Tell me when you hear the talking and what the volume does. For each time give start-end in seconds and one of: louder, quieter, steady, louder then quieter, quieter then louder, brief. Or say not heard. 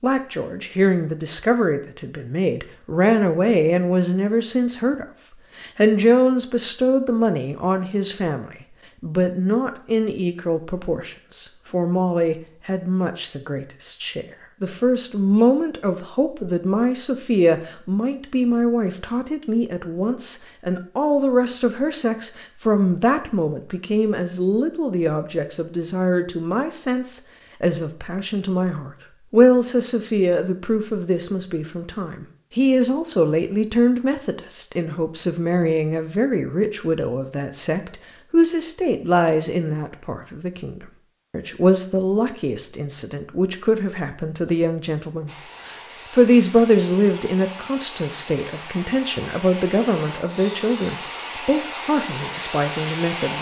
0.0-53.3 steady.